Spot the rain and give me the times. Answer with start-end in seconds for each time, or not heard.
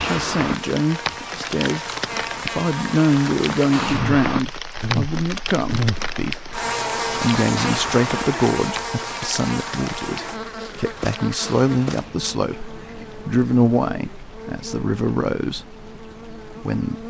0.0-17.0.